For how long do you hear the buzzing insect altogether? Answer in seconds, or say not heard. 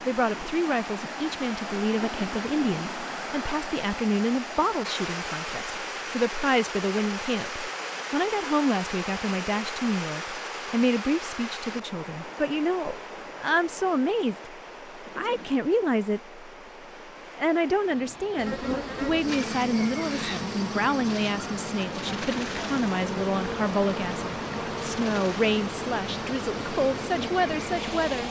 10 s.